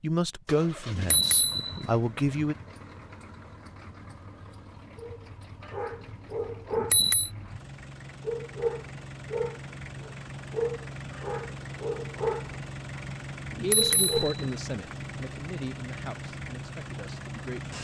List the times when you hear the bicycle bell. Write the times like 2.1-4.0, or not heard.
0.9-1.9, 6.7-7.3, 13.5-15.1.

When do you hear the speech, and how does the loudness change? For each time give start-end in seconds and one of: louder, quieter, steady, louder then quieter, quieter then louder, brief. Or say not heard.
0.0-2.5 brief
13.6-17.7 quieter.